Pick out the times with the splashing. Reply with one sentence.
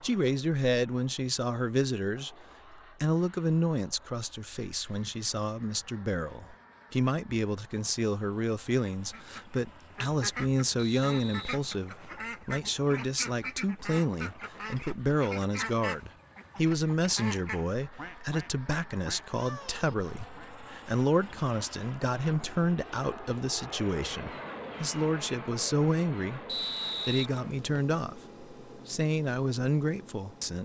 The splashing can't be heard in this clip.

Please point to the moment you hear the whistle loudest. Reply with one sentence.
The loudest moment of the whistle is at 27 seconds.